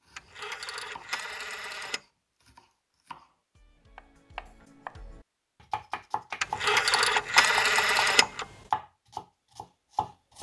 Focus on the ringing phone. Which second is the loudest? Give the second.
8 s.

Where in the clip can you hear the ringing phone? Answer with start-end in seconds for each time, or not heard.
0.1-2.0, 6.4-8.4.